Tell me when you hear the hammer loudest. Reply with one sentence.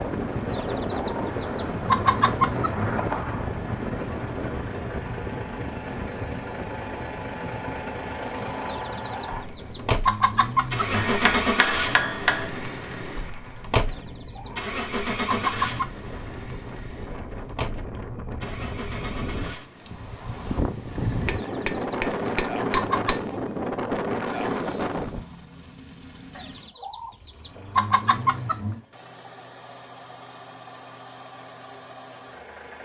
The loudest moment of the hammer is at 12 seconds.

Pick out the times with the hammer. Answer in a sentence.
You can hear the hammer from 10.9 to 12.5 s and from 21.2 to 23.2 s.